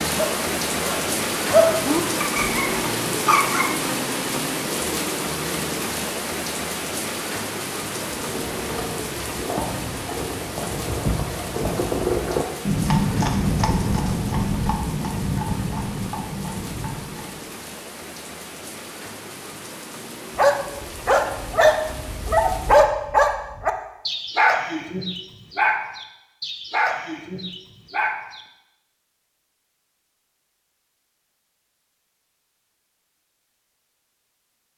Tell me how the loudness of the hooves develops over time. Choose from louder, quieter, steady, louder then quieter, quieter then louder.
louder then quieter.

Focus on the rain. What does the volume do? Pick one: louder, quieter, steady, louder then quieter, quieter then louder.
quieter.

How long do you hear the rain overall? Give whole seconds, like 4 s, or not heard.
23 s.